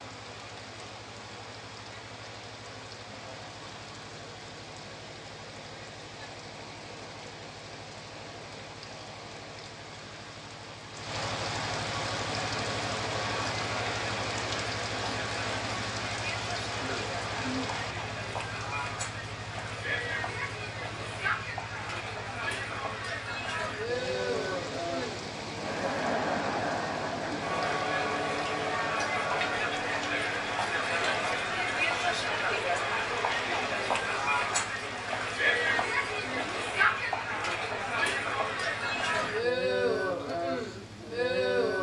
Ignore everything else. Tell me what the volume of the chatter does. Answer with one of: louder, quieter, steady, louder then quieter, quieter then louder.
louder.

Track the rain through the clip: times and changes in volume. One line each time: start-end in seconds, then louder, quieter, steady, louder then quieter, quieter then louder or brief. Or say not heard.
0.0-41.7 louder then quieter.